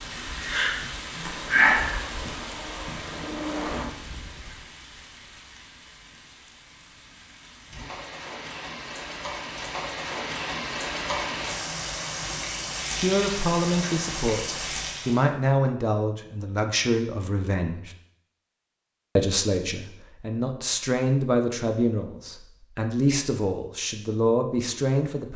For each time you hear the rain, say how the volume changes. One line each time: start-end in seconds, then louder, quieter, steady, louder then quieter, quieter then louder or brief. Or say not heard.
0.0-15.2 quieter then louder.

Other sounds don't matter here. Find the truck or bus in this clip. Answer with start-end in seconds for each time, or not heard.
0.0-4.4.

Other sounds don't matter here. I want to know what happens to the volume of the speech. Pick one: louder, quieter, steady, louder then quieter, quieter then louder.
steady.